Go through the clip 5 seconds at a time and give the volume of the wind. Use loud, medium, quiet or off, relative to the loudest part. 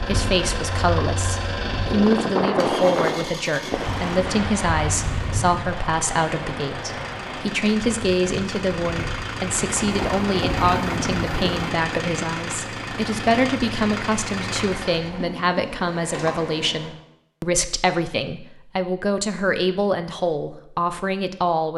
loud, medium, loud, off, off.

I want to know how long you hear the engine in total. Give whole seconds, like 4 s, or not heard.
17 s.